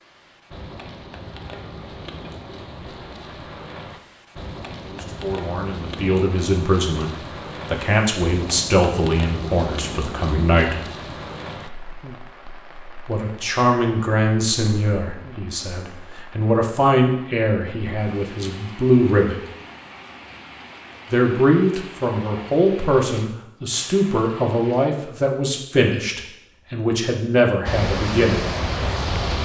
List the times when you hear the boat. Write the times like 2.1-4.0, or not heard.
27.6-29.4.